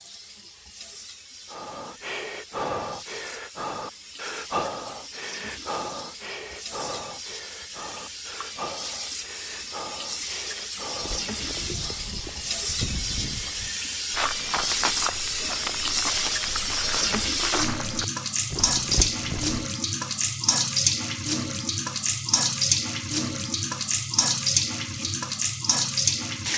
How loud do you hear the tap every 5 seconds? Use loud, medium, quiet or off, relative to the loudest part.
quiet, quiet, medium, loud, loud, loud.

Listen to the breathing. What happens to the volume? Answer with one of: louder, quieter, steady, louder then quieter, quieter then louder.
quieter.